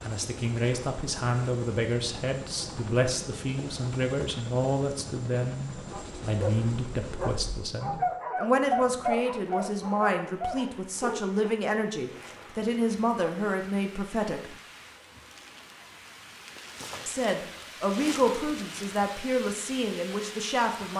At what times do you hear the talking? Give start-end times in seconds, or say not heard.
0.0-14.6, 17.1-20.9.